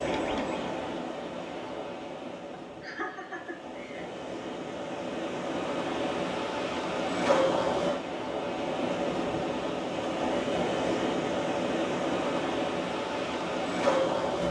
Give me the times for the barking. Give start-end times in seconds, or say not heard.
not heard.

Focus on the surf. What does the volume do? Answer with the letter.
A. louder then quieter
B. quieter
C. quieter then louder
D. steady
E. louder
E.